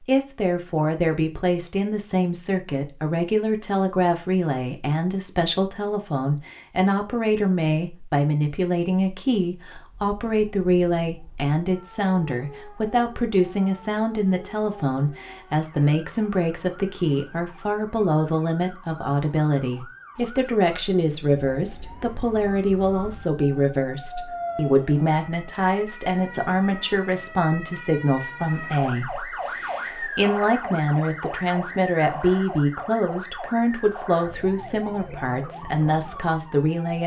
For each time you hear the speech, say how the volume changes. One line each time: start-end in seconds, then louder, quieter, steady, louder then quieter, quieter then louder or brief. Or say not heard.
0.1-37.0 steady.